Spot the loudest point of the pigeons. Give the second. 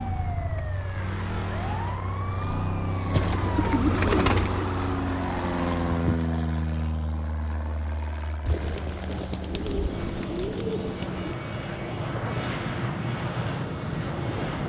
4 s.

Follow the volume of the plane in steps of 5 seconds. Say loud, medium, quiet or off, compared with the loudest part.
medium, loud, loud.